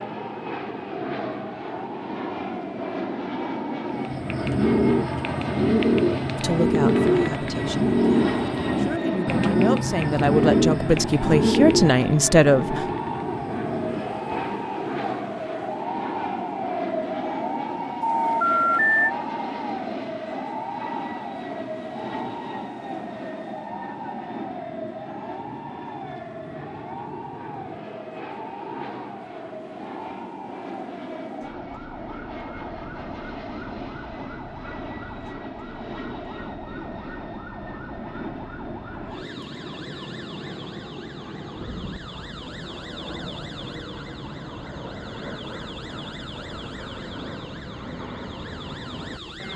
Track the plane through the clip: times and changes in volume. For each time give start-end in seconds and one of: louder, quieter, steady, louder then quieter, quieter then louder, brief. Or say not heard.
0.0-49.5 quieter.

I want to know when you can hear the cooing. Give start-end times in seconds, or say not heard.
3.9-14.7.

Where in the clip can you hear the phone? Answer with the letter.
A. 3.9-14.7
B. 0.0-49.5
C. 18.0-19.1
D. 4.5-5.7
C.